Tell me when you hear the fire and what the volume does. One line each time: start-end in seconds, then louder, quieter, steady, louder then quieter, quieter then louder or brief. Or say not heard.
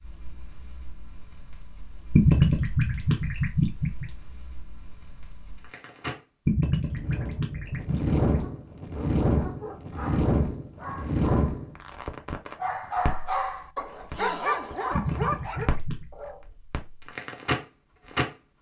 0.0-18.4 louder then quieter.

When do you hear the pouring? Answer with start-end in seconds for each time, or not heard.
2.1-4.0, 6.5-8.2, 14.9-16.1.